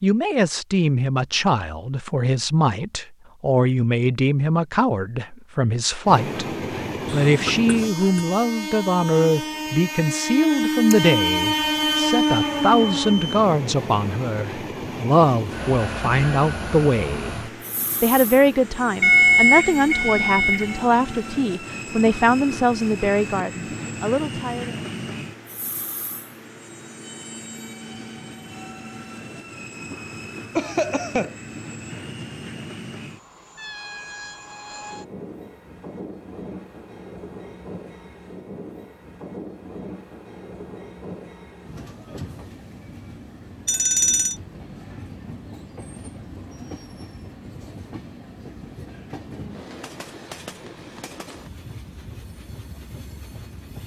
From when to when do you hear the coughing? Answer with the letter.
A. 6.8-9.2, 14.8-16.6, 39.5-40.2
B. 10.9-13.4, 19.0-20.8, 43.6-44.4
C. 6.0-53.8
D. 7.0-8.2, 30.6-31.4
D.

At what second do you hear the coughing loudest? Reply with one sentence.
The volume of the coughing peaks at 31 seconds.